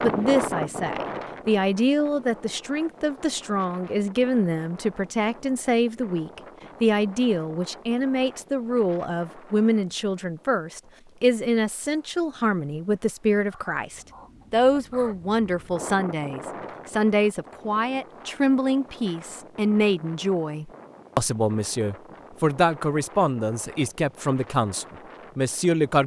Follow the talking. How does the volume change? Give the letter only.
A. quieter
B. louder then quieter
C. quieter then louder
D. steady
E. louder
D.